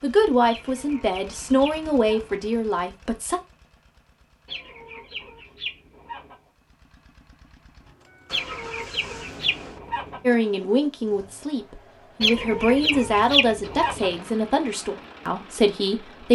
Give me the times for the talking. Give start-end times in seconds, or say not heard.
0.0-3.4, 10.2-16.2.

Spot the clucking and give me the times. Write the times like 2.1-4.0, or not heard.
0.5-2.4, 4.5-6.4, 8.3-10.3, 12.2-14.2.